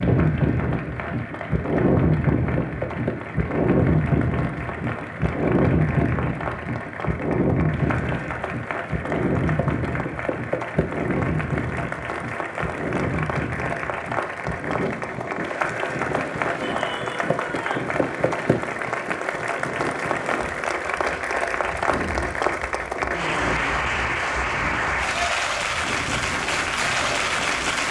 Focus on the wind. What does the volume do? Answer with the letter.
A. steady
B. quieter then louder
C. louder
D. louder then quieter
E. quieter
E.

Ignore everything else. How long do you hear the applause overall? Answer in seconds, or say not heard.
28 s.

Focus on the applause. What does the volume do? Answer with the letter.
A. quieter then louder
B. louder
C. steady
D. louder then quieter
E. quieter
B.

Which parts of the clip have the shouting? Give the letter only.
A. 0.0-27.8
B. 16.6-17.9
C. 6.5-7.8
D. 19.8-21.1
B.